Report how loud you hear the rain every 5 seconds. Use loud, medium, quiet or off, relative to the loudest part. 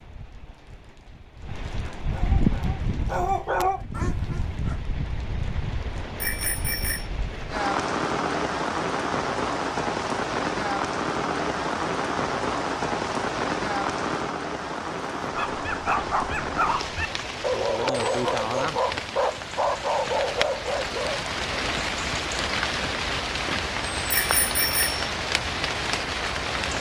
medium, loud, loud, medium, loud, loud.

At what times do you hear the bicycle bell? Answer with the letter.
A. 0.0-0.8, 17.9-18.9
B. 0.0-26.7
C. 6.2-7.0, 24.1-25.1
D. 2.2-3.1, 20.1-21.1
C.